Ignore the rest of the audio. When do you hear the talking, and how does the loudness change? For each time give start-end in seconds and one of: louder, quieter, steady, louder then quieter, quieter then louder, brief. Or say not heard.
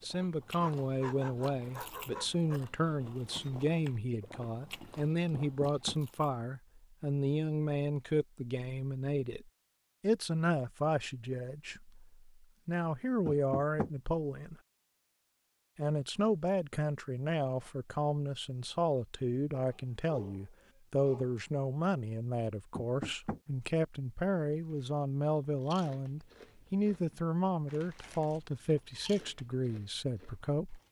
0.0-14.6 steady
15.8-30.8 steady.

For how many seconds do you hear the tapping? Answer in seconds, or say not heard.
2 s.